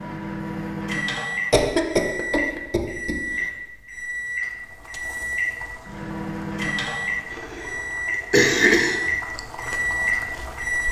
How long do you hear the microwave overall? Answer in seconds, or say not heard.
11 s.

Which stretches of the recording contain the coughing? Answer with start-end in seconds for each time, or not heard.
1.5-3.1, 7.3-9.1.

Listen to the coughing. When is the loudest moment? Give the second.
9 s.